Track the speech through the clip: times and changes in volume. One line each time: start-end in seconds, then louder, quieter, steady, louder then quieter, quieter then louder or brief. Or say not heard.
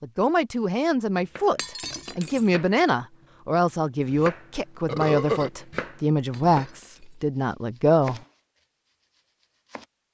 0.0-8.2 steady.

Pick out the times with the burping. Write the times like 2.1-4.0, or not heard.
4.8-5.5.